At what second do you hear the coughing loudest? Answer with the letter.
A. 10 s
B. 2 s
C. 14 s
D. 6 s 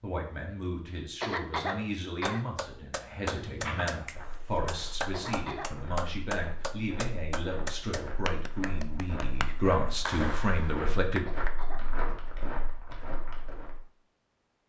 B.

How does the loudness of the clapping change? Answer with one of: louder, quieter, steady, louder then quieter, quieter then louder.
quieter.